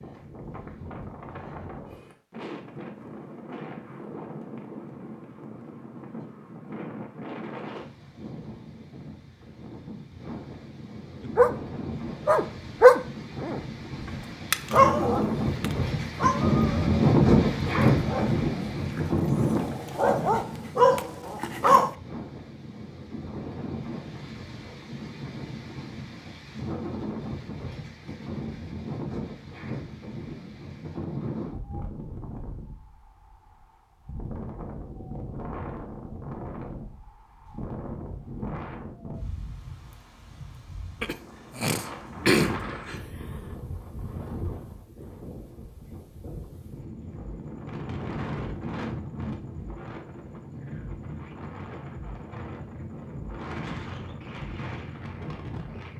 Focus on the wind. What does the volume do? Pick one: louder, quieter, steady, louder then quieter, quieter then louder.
louder then quieter.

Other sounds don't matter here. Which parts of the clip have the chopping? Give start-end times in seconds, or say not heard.
not heard.